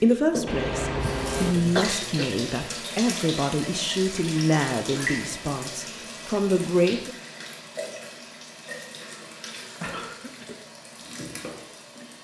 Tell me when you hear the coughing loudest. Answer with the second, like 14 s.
2 s.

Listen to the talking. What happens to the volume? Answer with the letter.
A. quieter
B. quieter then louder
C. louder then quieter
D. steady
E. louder
D.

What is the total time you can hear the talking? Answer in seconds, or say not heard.
7 s.